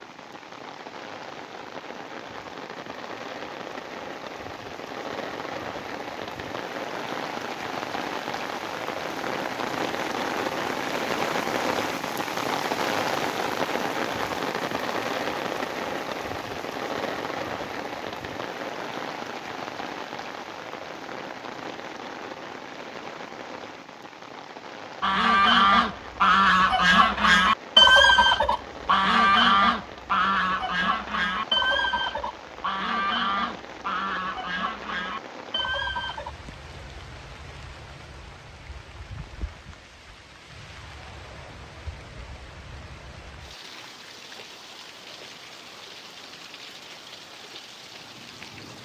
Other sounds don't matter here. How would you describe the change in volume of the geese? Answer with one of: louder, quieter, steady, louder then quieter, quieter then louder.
quieter.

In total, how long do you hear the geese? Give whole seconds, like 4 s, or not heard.
11 s.